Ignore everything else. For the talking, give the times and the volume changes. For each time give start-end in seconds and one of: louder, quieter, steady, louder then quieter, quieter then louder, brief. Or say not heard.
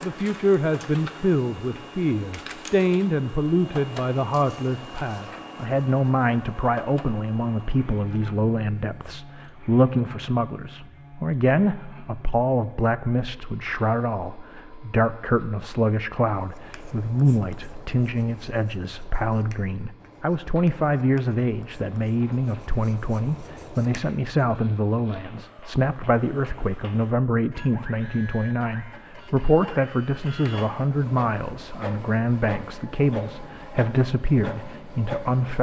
0.0-35.5 steady.